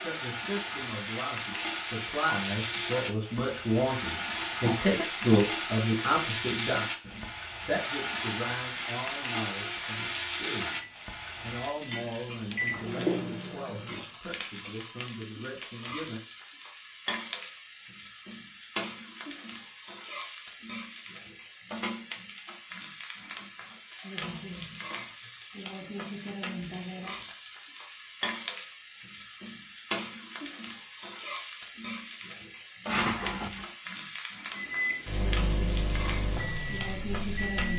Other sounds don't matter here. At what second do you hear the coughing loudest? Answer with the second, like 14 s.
33 s.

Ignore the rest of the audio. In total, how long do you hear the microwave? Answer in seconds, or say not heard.
7 s.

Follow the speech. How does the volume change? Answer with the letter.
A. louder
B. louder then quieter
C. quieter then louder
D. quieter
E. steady
B.